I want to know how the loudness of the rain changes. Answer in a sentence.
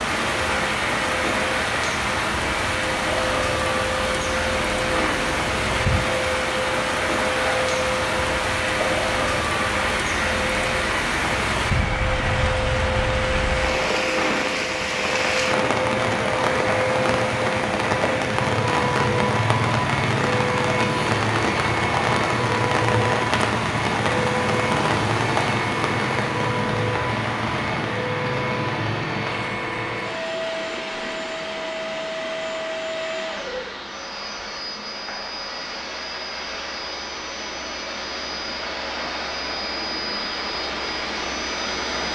The loudness of the rain goes down.